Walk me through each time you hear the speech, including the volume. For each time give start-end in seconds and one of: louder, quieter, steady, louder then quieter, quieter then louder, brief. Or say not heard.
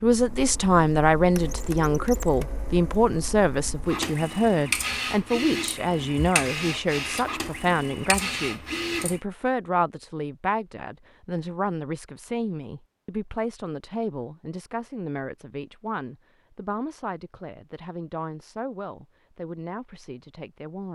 0.0-20.9 quieter.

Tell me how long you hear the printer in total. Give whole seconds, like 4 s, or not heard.
9 s.